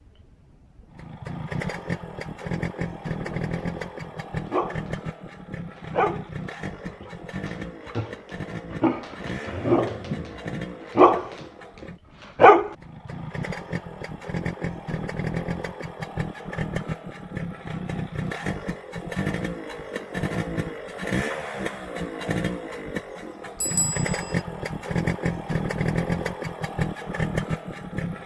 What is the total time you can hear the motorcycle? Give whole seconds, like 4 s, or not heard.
28 s.